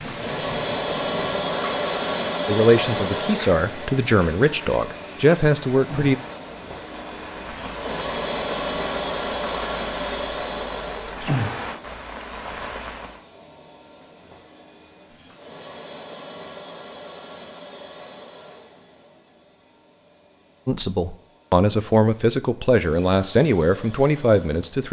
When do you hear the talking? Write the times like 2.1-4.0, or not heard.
2.5-6.2, 20.6-24.8.